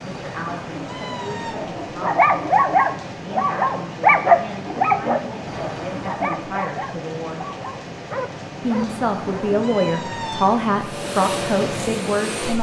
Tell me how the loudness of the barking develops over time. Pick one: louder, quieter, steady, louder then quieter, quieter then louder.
quieter.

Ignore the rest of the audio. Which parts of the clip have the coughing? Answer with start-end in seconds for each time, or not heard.
not heard.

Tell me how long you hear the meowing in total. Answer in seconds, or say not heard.
4 s.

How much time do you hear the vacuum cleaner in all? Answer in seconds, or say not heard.
2 s.